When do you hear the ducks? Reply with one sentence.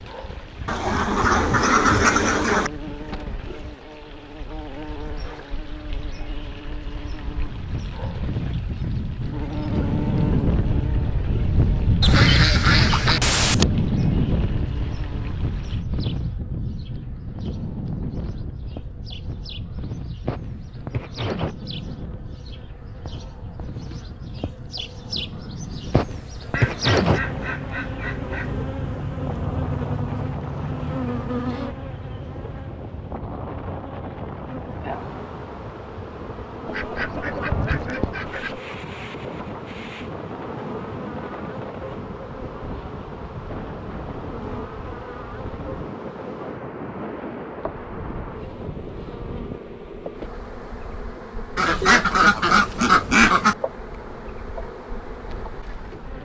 The ducks can be heard from 0.7 to 2.7 s, from 12.0 to 13.7 s, from 26.5 to 28.6 s, from 36.6 to 38.6 s and from 51.5 to 53.5 s.